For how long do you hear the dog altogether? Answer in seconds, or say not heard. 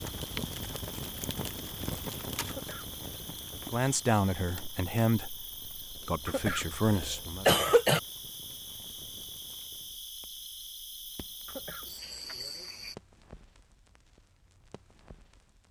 not heard.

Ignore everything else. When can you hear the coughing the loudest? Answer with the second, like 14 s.
8 s.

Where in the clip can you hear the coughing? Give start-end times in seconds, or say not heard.
2.5-3.3, 6.2-8.0, 11.4-12.2.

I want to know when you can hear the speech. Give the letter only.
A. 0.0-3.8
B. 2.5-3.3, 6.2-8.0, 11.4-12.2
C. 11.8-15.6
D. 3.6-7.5
D.